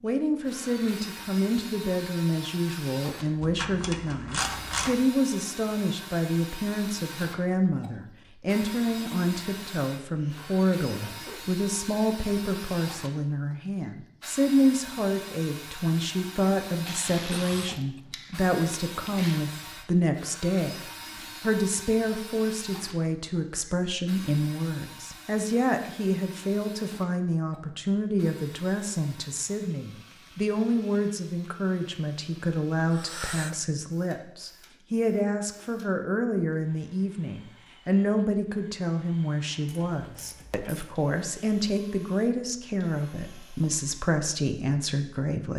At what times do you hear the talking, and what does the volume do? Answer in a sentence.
The talking can be heard from 0.0 to 45.5 s, at a steady volume.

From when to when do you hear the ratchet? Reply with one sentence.
You can hear the ratchet from 3.4 to 5.0 s, from 16.7 to 19.4 s and from 39.6 to 41.0 s.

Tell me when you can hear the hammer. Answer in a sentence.
You can't hear the hammer here.